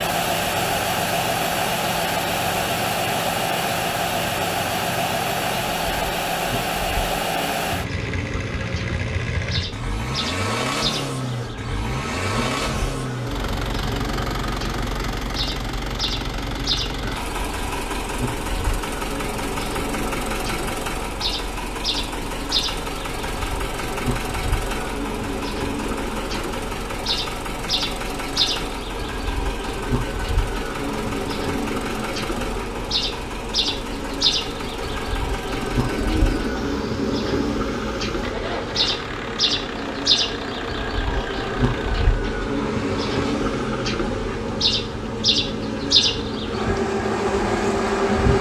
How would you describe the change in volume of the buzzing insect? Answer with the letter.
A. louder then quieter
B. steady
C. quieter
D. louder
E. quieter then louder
D.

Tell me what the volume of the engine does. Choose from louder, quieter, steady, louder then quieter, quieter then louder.
quieter.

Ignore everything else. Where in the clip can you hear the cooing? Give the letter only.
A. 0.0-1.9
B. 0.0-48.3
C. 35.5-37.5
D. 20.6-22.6
C.